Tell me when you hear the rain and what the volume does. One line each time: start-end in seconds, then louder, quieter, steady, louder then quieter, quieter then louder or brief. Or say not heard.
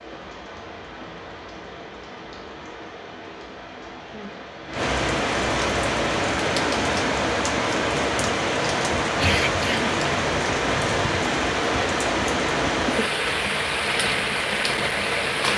0.0-15.5 louder.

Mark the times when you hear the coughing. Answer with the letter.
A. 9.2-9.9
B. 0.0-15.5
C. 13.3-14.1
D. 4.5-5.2
A.